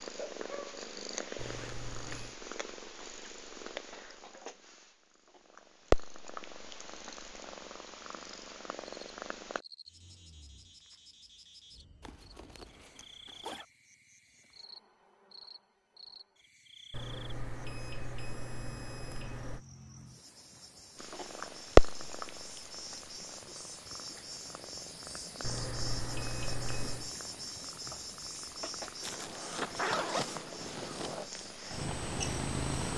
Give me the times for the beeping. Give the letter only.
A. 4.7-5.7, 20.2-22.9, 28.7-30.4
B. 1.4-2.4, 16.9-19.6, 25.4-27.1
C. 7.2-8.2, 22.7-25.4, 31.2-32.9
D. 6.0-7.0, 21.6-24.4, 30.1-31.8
B.